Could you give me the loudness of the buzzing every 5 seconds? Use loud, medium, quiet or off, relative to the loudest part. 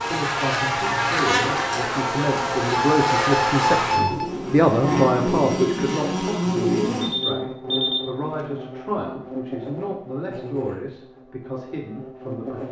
loud, loud, quiet.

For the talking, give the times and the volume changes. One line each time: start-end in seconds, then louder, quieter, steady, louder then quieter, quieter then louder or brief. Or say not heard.
0.0-12.6 louder then quieter.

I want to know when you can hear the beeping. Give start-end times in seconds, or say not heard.
2.7-4.3, 7.0-8.5.